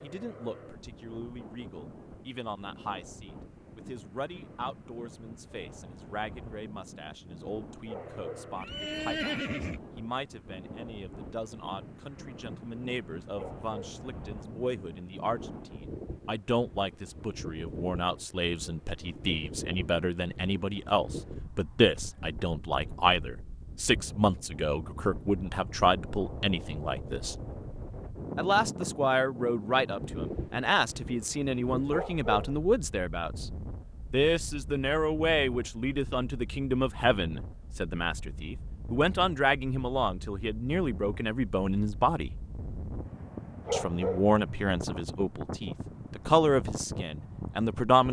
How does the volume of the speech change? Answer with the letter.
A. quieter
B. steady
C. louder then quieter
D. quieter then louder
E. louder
E.